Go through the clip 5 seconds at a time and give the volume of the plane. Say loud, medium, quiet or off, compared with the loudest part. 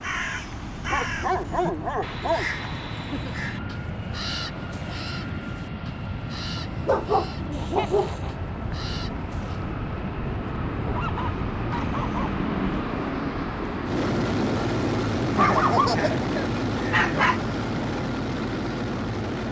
medium, medium, loud, loud.